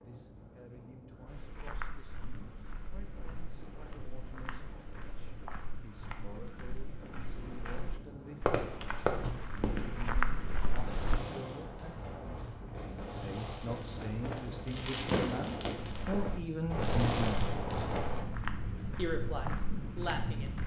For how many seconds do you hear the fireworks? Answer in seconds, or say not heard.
10 s.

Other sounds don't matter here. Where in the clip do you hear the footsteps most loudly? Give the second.
10 s.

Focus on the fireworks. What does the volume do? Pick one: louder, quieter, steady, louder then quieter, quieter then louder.
quieter then louder.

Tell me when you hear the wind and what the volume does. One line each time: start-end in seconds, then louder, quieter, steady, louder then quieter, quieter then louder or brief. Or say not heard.
0.0-20.6 louder.